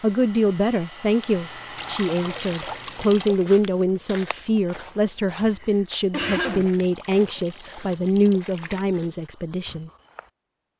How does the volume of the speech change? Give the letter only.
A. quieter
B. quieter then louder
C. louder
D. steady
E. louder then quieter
D.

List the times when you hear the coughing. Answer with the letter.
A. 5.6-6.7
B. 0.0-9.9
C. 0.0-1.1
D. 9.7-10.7
A.